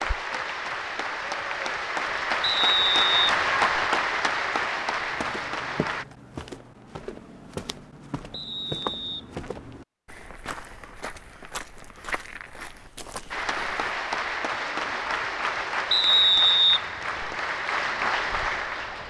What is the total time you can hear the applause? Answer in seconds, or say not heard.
12 s.